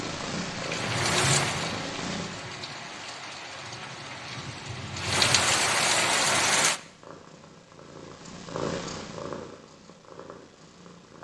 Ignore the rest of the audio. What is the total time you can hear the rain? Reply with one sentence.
The rain can be heard for 7 seconds in total.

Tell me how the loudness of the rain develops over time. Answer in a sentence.
The loudness of the rain goes down, then up.